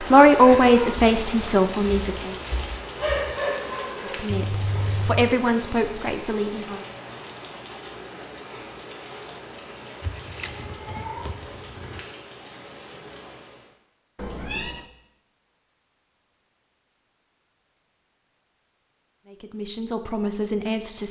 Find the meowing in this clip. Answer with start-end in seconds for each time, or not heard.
4.3-5.3, 10.0-12.0, 14.2-14.8.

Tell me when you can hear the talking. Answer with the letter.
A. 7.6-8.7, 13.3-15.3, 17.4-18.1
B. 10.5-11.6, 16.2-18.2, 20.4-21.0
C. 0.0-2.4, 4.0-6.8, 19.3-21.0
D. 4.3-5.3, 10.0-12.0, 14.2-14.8
C.